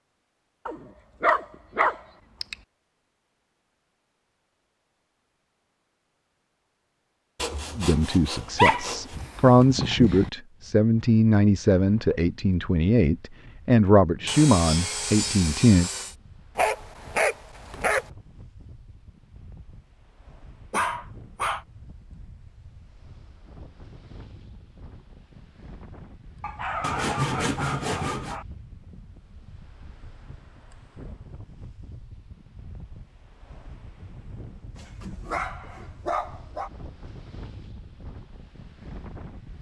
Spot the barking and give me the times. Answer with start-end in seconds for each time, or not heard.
0.7-2.5, 8.4-10.3, 16.6-18.1, 20.7-21.6, 26.4-28.4, 34.8-36.7.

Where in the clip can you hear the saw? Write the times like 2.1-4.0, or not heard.
7.3-9.2, 14.2-16.1, 26.8-28.4.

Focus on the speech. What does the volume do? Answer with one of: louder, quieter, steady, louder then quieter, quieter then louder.
steady.